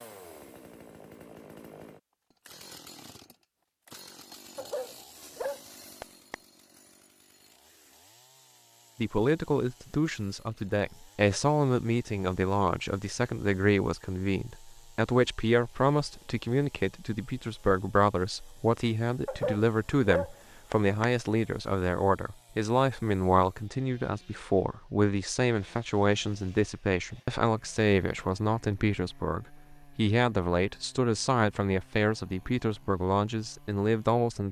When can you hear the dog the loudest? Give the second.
20 s.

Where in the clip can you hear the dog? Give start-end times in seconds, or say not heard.
4.5-6.3, 19.2-21.1.